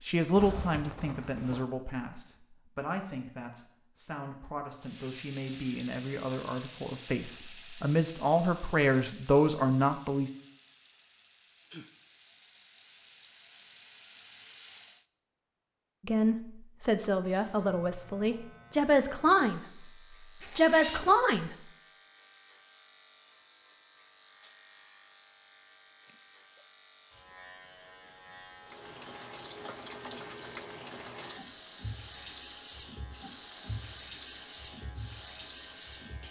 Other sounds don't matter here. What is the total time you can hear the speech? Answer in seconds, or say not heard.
15 s.